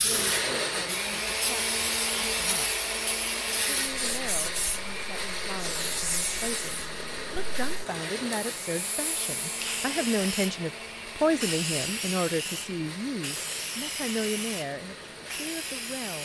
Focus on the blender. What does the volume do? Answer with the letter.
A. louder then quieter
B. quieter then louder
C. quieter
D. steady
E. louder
C.